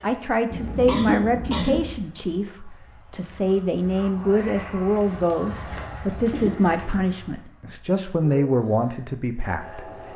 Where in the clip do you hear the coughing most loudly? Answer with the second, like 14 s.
1 s.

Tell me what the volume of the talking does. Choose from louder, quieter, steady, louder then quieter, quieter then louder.
steady.